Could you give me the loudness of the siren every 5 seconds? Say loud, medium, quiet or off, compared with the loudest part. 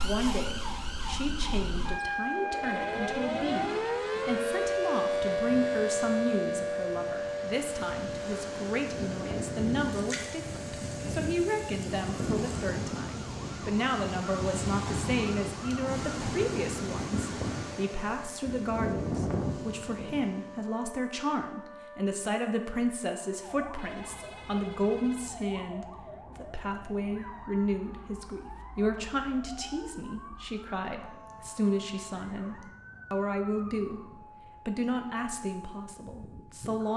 loud, loud, quiet, quiet, quiet, quiet, quiet, quiet.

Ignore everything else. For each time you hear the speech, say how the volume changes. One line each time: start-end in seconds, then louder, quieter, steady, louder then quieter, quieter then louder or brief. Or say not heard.
0.0-36.9 steady.